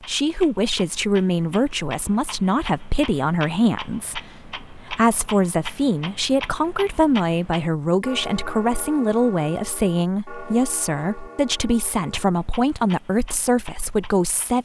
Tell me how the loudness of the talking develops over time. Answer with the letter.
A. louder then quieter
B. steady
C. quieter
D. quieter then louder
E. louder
B.